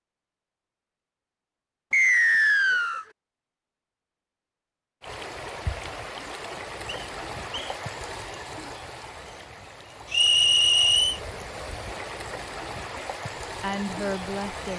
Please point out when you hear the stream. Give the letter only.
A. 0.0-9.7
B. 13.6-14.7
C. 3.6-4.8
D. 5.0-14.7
D.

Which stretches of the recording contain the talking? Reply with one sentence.
You can hear the talking from 13.6 to 14.7 s.